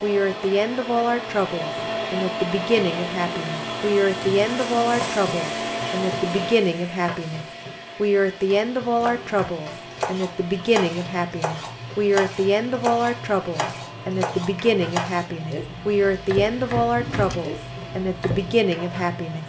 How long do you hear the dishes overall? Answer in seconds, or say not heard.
not heard.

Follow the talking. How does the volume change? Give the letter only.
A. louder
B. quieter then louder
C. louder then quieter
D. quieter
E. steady
E.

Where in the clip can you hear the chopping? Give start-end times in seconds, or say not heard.
9.0-18.6.